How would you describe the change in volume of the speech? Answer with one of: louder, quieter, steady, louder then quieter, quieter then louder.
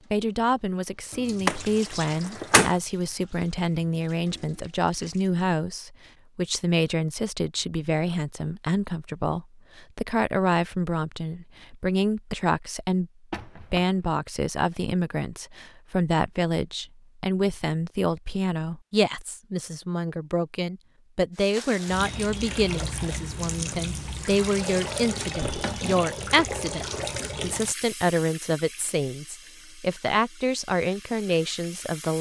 steady.